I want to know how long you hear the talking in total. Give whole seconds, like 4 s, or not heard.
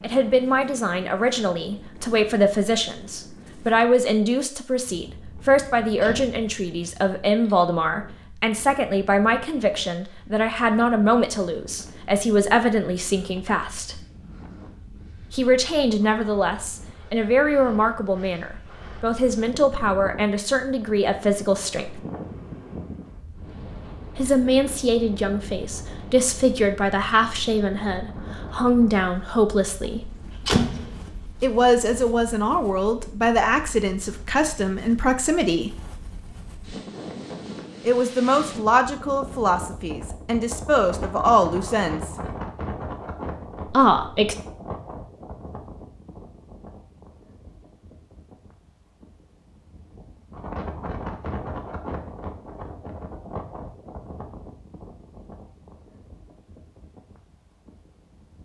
36 s.